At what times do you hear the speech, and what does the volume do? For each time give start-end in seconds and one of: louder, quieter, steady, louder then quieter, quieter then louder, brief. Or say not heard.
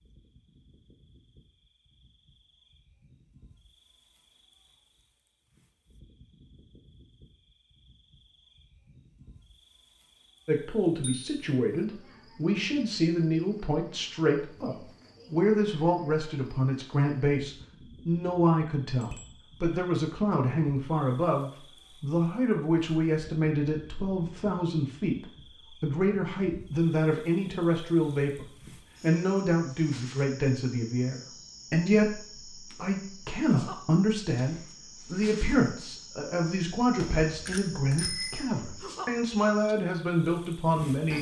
10.4-41.1 steady.